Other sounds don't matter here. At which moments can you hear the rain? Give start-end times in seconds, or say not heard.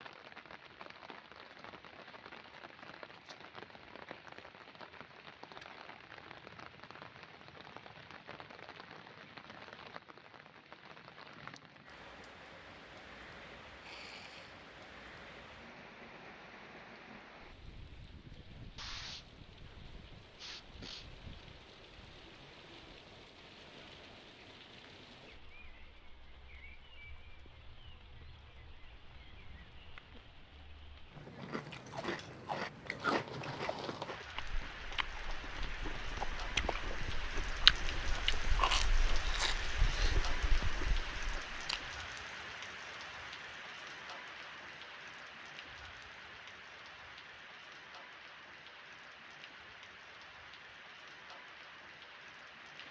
0.0-52.8.